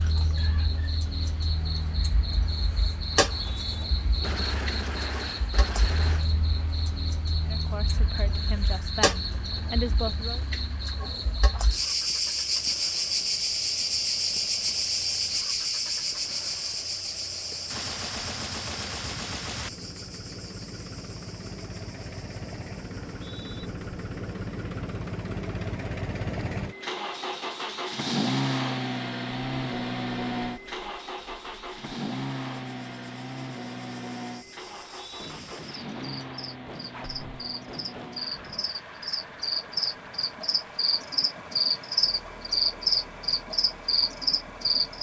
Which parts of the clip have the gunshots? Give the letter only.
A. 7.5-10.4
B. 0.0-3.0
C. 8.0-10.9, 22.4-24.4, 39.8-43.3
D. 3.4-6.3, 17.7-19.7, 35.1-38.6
D.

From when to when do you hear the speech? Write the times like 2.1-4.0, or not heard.
7.5-10.4.